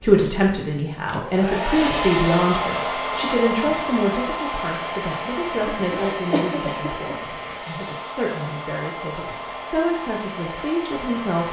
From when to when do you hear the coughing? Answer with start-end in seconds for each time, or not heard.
5.7-7.2.